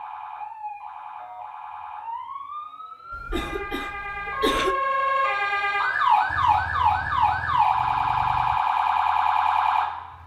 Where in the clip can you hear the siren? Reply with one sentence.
You can hear the siren from 0.0 to 10.2 s.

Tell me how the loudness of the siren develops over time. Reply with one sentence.
The loudness of the siren goes up.